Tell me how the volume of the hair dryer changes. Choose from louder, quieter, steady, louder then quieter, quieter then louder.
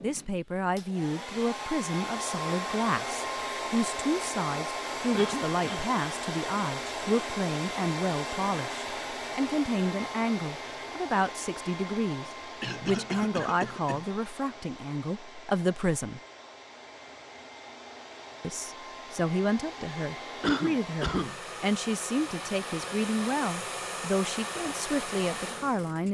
quieter then louder.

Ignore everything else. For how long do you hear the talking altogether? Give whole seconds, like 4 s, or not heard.
24 s.